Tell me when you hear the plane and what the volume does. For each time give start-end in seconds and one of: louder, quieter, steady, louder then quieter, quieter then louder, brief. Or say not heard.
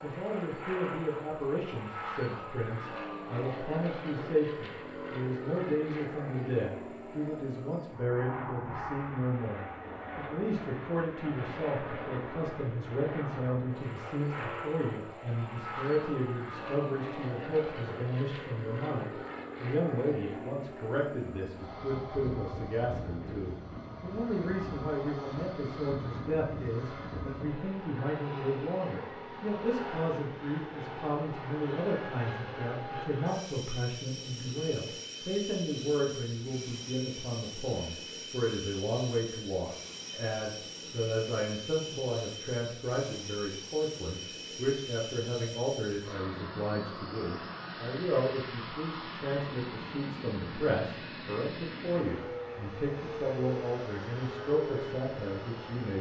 0.0-55.9 steady.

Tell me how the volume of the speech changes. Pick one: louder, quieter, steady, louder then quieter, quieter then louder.
steady.